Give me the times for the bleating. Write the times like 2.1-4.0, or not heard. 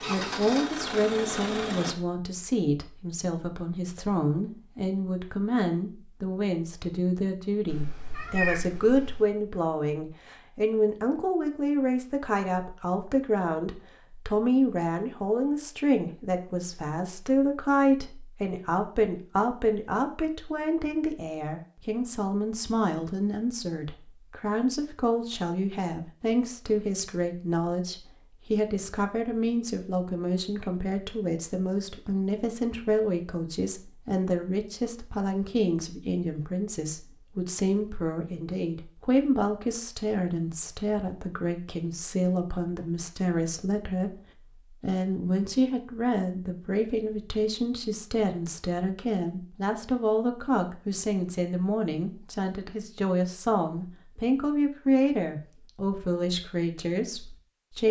not heard.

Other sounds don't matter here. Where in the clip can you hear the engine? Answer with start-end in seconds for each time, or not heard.
0.0-1.9.